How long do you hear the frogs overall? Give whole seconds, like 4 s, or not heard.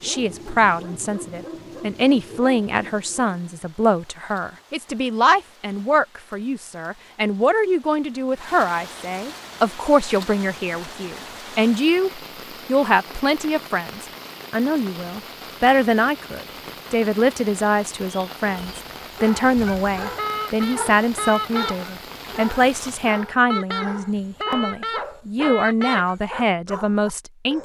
not heard.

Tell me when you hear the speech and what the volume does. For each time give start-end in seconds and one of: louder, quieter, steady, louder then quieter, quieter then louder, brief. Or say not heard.
0.0-27.5 steady.